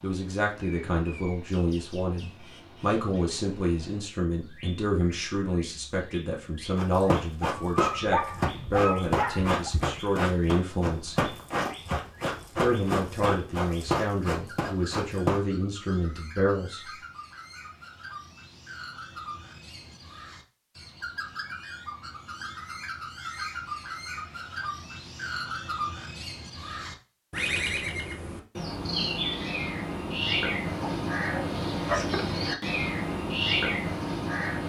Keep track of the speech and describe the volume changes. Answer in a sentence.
The loudness of the speech stays about the same.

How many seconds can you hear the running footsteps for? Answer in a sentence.
You can hear the running footsteps for 9 seconds altogether.